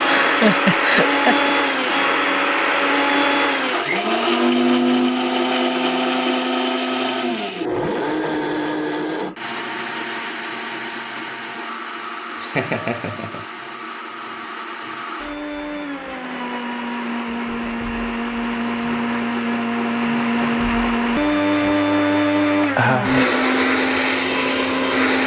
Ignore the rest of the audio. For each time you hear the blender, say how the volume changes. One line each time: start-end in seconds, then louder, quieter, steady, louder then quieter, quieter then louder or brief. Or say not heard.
0.0-25.2 quieter then louder.